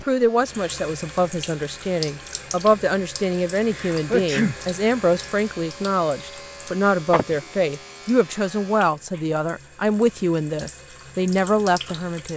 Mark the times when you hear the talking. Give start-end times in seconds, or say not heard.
0.1-12.3.